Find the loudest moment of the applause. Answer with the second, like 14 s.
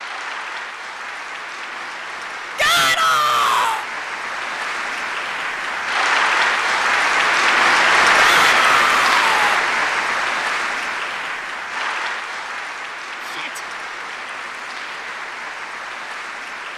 8 s.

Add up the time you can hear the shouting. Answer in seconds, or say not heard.
3 s.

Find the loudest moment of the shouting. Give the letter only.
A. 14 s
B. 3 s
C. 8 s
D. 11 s
B.